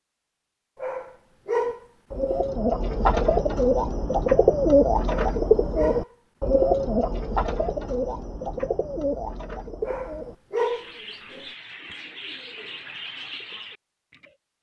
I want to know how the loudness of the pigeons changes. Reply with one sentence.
The volume of the pigeons goes down.